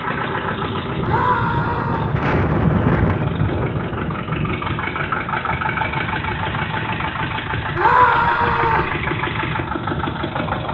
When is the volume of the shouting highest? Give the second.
8 s.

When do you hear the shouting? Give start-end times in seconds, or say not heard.
1.0-2.1, 7.8-8.9.